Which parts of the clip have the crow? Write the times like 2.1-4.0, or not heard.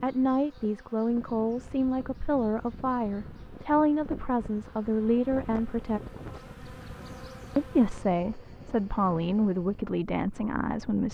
not heard.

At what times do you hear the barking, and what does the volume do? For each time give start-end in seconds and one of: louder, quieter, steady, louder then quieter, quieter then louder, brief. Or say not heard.
not heard.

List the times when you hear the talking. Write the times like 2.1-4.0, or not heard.
0.0-6.0, 7.5-11.0.